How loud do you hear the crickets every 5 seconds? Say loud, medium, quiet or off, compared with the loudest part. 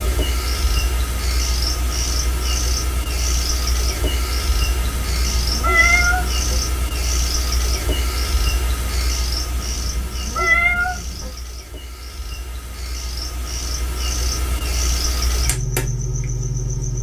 loud, loud, medium, loud.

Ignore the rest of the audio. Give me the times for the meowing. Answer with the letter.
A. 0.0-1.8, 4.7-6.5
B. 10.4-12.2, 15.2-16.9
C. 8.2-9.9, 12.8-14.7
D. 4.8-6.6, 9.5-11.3
D.